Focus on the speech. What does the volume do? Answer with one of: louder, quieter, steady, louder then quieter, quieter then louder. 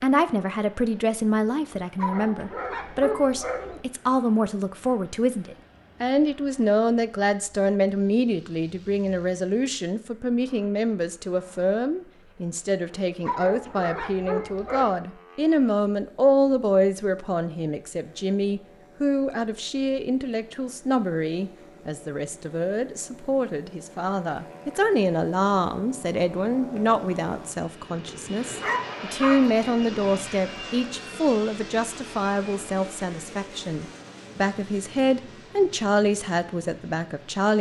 steady.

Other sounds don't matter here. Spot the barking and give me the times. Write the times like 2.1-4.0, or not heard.
1.9-3.8, 13.2-14.9, 28.6-29.4.